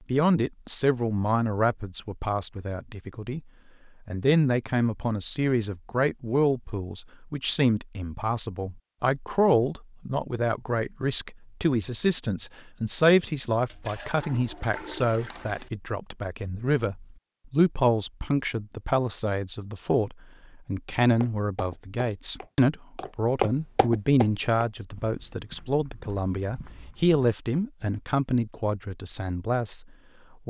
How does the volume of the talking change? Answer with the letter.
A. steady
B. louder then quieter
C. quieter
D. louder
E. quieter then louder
A.